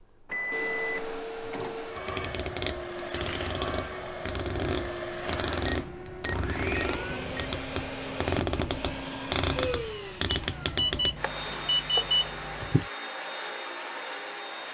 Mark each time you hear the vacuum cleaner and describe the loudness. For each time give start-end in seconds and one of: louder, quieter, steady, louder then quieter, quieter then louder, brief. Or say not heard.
0.0-14.6 steady.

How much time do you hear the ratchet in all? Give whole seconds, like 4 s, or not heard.
9 s.